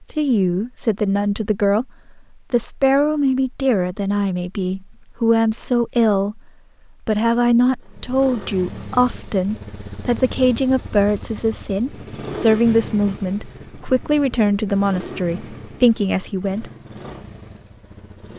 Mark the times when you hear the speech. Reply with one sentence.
You can hear the speech from 0.0 to 1.9 s, from 2.5 to 6.4 s and from 7.0 to 16.7 s.